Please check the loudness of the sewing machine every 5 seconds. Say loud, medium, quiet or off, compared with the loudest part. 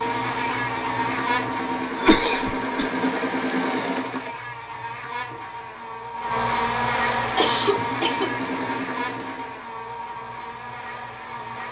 loud, loud, off.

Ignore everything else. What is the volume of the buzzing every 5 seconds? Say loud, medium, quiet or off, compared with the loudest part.
loud, loud, medium.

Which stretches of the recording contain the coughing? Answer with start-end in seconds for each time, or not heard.
1.9-2.9, 7.3-8.3.